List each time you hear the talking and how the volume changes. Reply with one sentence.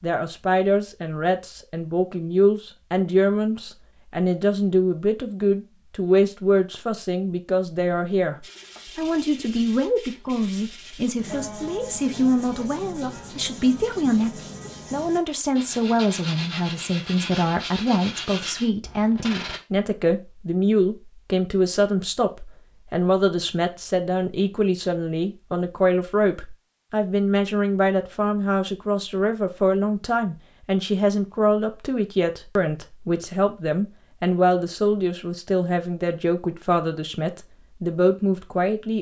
You can hear the talking from 0.0 to 38.9 s, at a steady volume.